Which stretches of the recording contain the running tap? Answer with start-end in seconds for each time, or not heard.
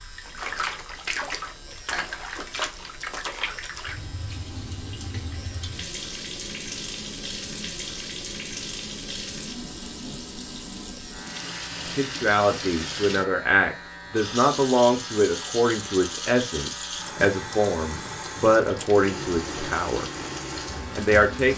0.0-21.5.